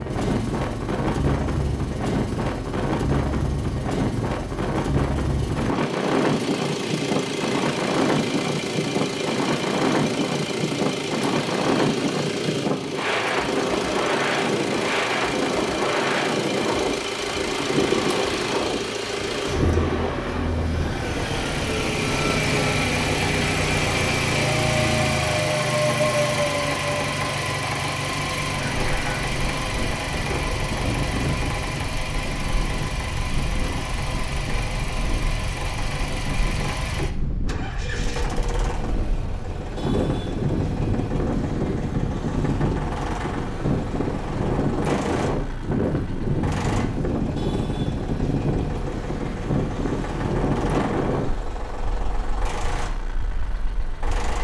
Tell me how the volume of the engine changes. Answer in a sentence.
The loudness of the engine goes up, then down.